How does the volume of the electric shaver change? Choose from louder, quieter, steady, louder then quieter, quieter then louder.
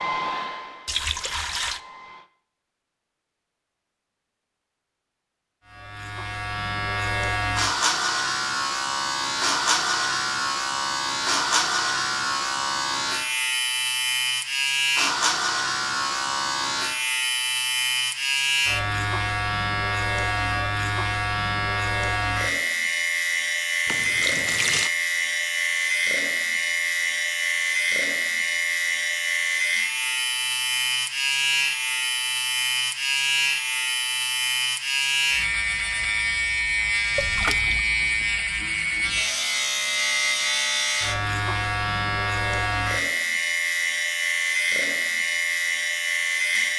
steady.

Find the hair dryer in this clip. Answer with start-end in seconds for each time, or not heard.
0.0-2.3.